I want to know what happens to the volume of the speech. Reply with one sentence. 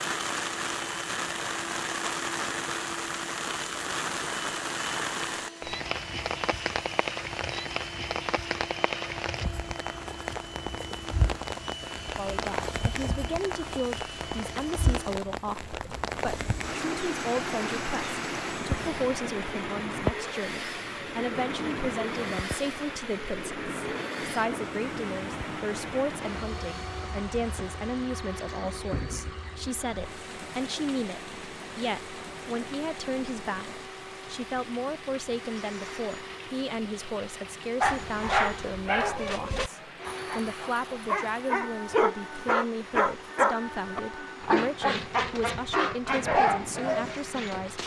The volume of the speech stays about the same.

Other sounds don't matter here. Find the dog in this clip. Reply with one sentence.
You can hear the dog from 37.8 to 47.8 s.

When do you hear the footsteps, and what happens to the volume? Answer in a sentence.
You can't hear the footsteps here.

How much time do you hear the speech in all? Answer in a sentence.
The speech can be heard for 36 seconds in total.